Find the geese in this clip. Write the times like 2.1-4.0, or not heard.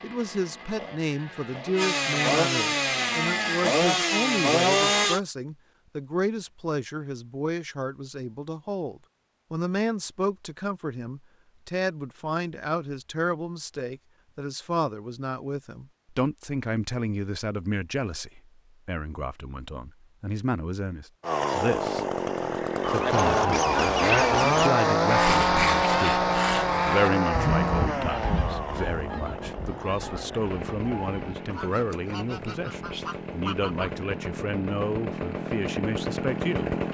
22.8-34.0.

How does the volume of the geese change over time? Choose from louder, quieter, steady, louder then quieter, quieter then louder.
quieter.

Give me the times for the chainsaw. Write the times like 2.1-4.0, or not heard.
0.0-5.2, 21.2-36.8.